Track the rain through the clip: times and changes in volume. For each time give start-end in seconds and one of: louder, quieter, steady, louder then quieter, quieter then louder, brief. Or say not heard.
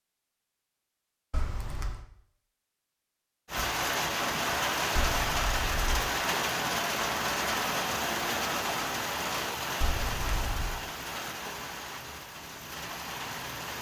3.5-13.7 quieter.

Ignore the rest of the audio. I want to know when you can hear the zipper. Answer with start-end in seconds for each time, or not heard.
1.3-2.0, 5.0-6.0, 9.8-10.8.